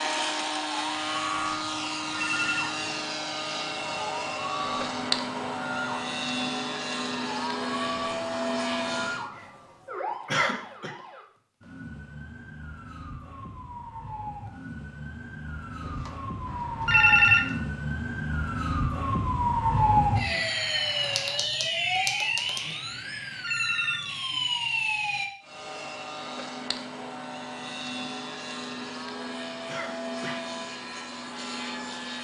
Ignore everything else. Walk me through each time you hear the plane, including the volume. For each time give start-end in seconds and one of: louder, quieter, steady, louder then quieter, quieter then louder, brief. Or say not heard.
0.0-9.3 steady
25.4-32.1 steady.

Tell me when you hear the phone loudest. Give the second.
17 s.